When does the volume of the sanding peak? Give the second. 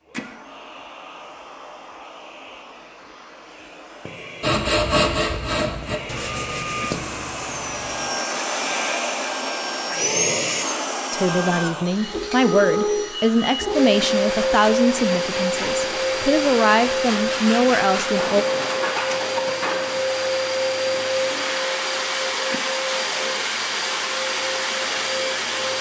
5 s.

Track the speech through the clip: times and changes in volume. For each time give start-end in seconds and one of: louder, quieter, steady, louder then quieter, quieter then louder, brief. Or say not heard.
11.1-18.4 steady.